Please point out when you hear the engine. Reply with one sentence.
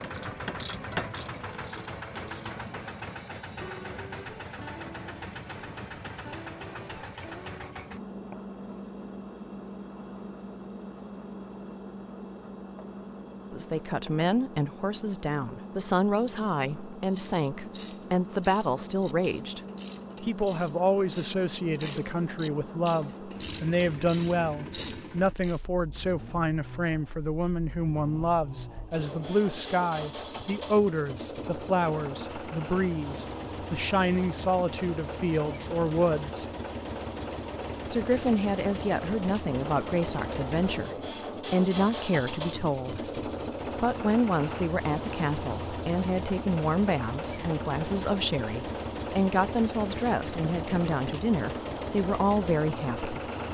You can hear the engine from 0.0 to 53.4 s.